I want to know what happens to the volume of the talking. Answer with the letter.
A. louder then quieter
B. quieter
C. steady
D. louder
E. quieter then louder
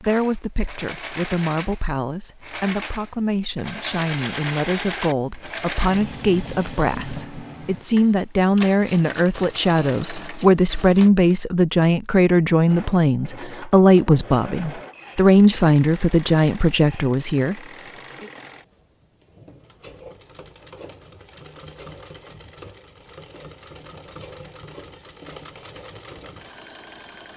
D.